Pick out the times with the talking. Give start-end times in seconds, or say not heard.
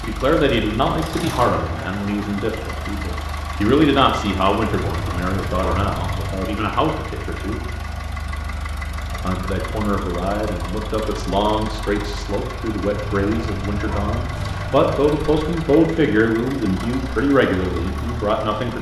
0.0-7.6, 9.2-18.7.